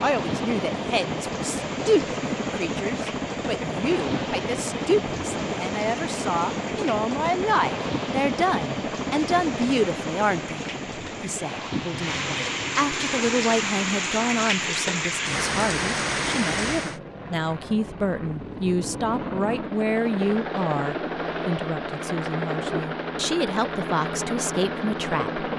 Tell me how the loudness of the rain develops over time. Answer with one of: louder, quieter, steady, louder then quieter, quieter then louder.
louder.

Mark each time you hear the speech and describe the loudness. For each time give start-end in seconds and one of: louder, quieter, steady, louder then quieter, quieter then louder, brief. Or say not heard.
0.0-25.4 steady.